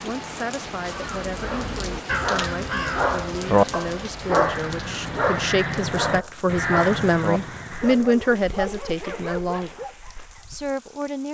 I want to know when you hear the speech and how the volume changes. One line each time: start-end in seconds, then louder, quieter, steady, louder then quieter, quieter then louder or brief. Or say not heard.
0.0-9.8 louder
10.4-11.2 brief.